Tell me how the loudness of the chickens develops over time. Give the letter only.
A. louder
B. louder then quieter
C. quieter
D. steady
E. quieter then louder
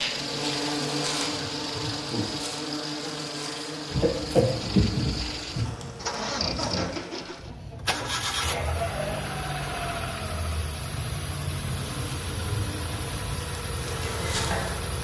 E.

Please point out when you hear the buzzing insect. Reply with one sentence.
You can hear the buzzing insect from 0.0 to 7.5 s and from 11.8 to 14.9 s.